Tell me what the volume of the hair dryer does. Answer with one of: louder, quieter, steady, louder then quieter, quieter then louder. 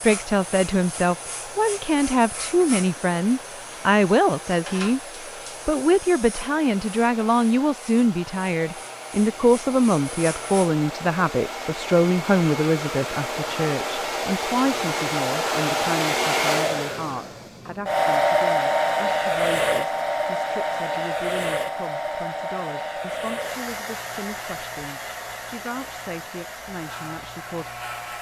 louder then quieter.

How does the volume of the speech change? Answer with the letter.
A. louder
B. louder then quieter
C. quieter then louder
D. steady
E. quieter
E.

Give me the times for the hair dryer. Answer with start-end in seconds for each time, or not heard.
0.0-28.1.